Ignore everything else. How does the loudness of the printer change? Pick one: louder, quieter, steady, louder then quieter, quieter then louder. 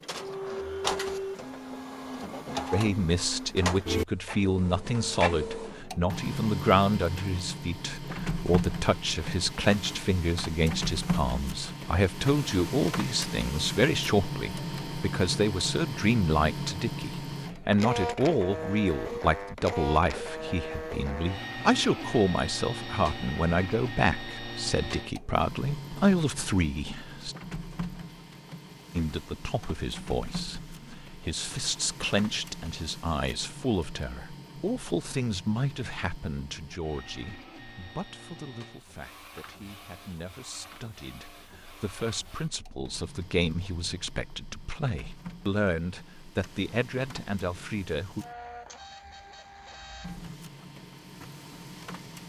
quieter.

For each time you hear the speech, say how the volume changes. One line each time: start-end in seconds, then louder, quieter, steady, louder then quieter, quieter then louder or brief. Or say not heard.
2.7-27.4 steady
28.9-48.2 quieter then louder.